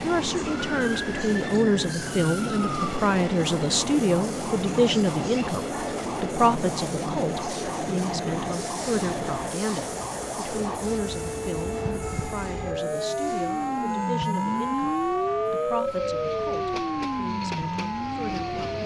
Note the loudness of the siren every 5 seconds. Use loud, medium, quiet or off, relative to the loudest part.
medium, medium, loud, loud.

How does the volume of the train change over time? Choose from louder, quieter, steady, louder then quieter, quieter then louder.
quieter.